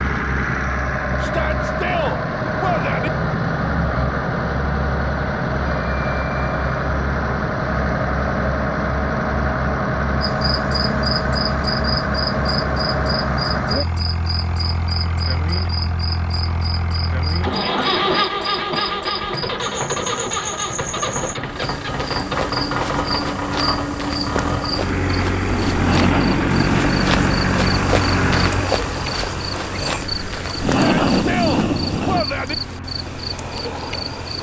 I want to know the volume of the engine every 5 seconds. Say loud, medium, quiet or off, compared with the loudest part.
loud, loud, loud, loud, loud, loud, quiet.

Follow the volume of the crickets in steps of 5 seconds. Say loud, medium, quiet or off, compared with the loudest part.
off, off, medium, medium, medium, loud, loud.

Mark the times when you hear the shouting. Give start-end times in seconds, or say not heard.
1.2-3.1, 30.6-32.5.